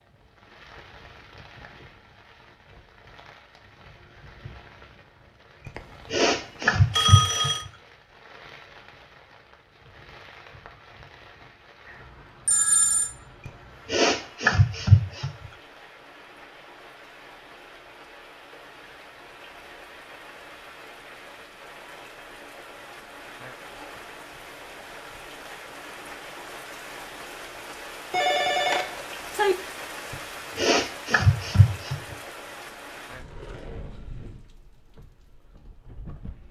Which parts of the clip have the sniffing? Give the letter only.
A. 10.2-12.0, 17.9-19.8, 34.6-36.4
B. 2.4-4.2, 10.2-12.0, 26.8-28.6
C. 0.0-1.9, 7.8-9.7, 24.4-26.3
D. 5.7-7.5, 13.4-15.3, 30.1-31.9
D.